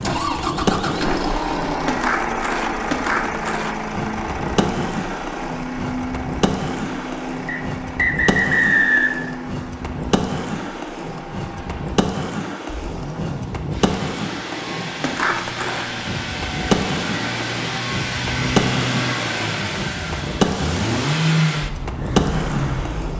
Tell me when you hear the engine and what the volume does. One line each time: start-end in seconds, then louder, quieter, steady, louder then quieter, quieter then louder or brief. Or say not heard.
0.0-23.1 quieter then louder.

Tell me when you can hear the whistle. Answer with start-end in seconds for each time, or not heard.
7.5-9.2.